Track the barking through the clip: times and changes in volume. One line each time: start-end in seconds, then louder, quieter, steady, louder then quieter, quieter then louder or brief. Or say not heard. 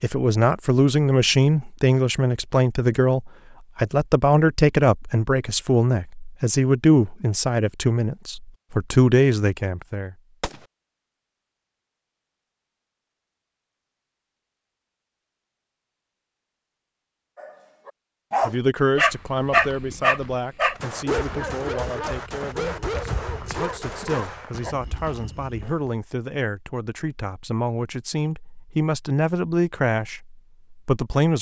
17.4-24.8 quieter.